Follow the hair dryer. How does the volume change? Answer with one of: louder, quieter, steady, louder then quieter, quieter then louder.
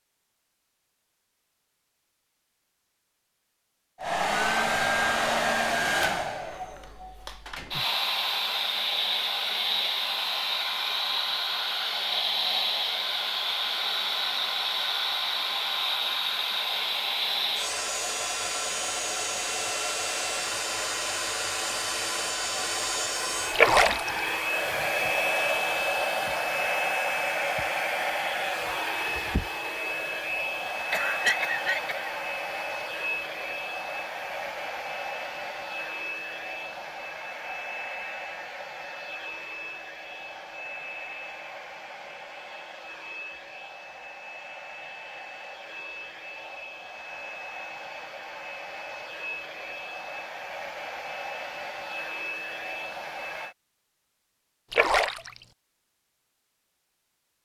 quieter.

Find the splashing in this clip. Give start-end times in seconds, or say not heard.
23.5-24.2, 54.7-55.4.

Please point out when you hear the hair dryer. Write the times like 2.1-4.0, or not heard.
4.0-53.5.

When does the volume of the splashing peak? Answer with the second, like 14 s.
24 s.